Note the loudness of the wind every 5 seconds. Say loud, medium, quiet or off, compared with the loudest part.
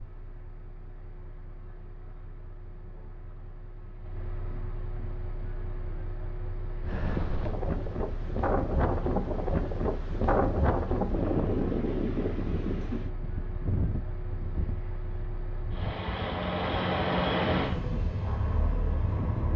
off, loud, loud, medium.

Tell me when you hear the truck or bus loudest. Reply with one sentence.
The loudest moment of the truck or bus is at 17 seconds.